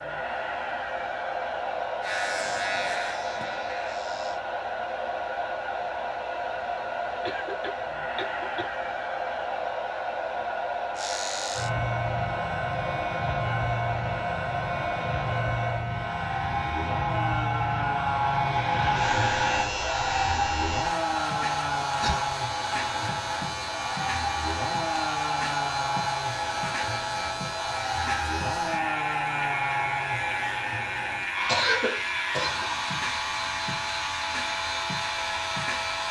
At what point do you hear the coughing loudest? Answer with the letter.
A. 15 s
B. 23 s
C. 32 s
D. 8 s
C.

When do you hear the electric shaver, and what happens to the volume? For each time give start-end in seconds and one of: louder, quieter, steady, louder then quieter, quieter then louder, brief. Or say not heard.
2.0-4.4 brief
10.9-36.0 steady.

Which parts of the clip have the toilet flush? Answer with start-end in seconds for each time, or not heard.
not heard.